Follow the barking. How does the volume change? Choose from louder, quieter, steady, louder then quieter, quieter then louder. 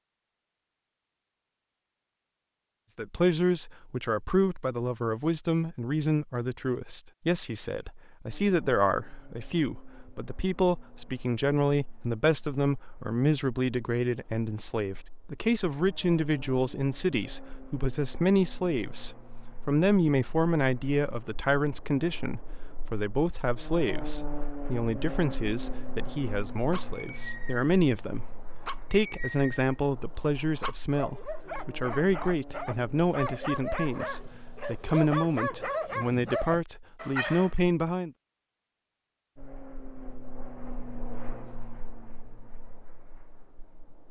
louder.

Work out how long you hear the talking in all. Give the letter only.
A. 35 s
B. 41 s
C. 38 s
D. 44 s
A.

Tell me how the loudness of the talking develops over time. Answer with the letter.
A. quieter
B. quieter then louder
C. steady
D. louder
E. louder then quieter
C.